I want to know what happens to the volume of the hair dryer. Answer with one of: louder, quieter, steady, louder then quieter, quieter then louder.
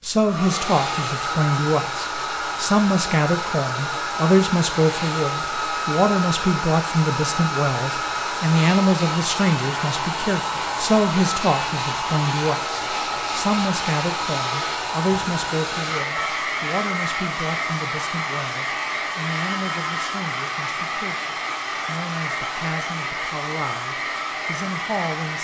steady.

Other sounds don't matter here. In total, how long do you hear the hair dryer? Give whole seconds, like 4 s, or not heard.
25 s.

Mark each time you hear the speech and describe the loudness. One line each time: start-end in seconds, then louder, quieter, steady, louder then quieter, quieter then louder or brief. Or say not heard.
0.0-25.3 quieter.